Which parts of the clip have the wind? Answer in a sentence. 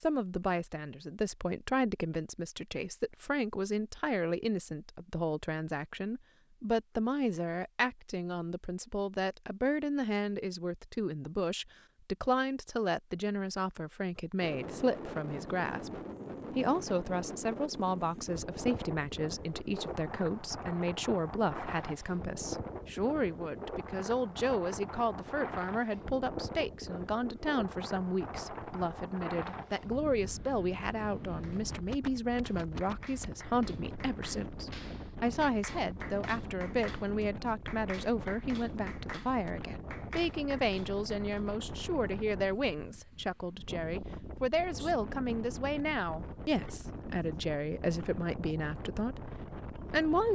The wind can be heard from 14.4 to 50.3 s.